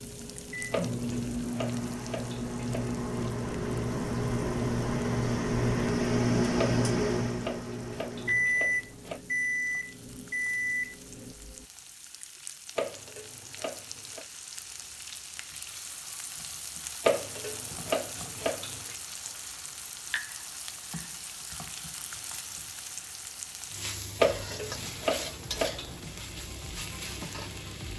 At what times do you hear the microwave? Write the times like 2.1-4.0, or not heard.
0.0-11.7.